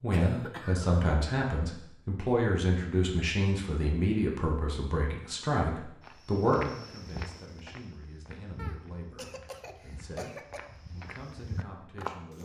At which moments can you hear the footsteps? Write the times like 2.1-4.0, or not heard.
6.0-12.3.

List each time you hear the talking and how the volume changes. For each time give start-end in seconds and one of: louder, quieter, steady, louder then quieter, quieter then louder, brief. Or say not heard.
0.0-12.3 quieter.